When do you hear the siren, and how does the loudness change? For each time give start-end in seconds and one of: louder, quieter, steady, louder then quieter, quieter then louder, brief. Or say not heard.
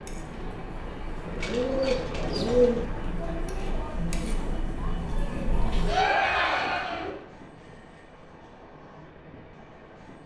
not heard.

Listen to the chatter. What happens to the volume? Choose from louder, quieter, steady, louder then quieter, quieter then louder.
louder.